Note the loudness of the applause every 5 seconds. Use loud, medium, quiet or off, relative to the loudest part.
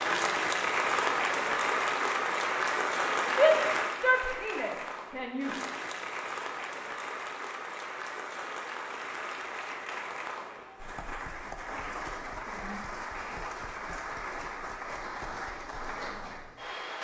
loud, medium, medium, medium.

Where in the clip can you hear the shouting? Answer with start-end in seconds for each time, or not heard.
3.3-5.5.